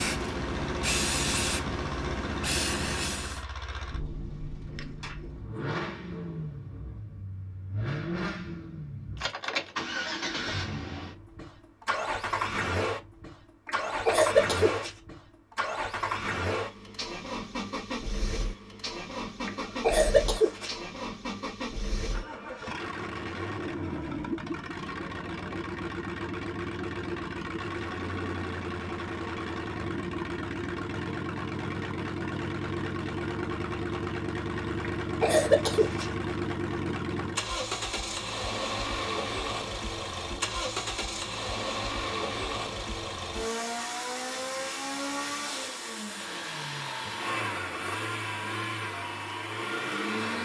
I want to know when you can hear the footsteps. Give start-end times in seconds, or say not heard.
not heard.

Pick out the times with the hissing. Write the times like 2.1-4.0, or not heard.
0.0-3.5.